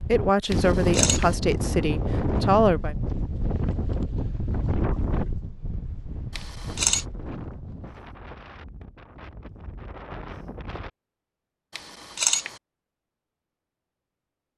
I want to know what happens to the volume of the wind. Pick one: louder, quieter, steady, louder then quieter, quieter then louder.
quieter.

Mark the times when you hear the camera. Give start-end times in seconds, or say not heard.
0.5-1.4, 6.3-7.0, 11.8-12.6.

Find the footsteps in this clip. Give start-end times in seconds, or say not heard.
not heard.